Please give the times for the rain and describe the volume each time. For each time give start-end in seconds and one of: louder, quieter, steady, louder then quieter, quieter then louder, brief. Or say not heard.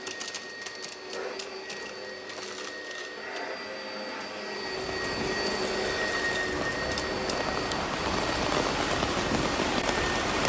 4.5-10.4 louder.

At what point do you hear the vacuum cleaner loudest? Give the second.
6 s.